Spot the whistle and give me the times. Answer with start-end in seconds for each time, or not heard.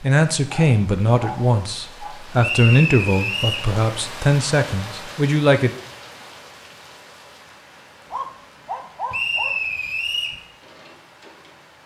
2.4-3.7, 9.1-10.4.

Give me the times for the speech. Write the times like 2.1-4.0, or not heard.
0.0-5.7.